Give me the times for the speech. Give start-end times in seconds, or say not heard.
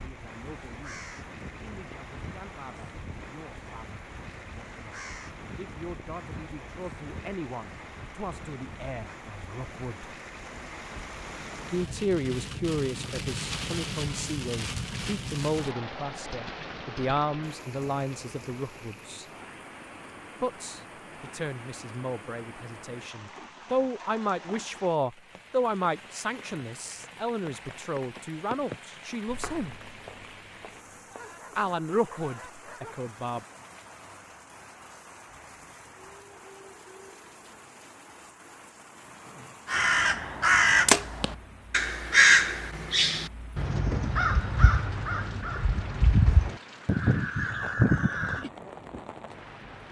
0.0-10.1, 11.7-19.2, 20.4-29.8, 31.6-33.5.